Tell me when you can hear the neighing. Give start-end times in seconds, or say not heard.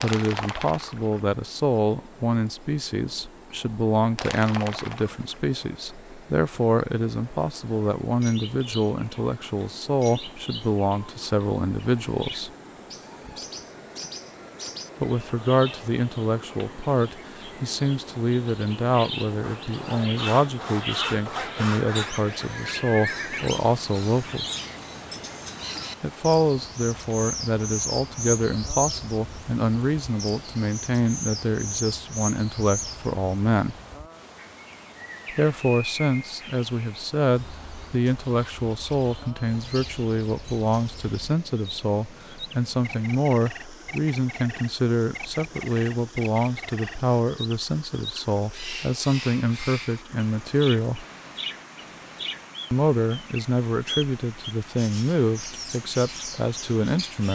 21.8-23.5.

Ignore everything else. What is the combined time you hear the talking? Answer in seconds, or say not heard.
50 s.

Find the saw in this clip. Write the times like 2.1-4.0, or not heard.
19.4-22.1.